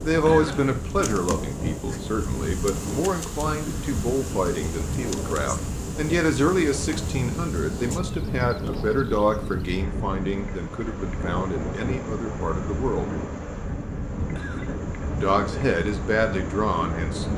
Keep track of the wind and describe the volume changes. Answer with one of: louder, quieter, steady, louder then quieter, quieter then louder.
steady.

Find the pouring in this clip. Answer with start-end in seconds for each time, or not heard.
not heard.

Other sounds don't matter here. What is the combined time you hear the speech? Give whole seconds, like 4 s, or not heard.
15 s.